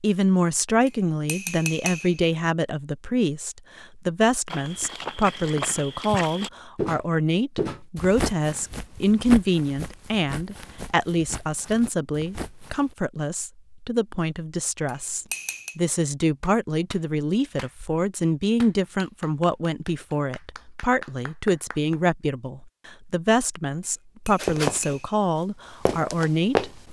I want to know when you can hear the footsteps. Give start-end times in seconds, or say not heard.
4.5-12.9, 24.4-26.7.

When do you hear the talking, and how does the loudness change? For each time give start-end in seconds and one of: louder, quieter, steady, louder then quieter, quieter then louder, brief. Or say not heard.
0.0-26.7 steady.